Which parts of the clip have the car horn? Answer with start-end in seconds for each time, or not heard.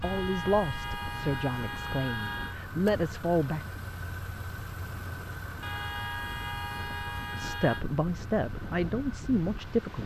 0.0-2.6, 5.6-7.8.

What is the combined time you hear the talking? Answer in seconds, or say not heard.
6 s.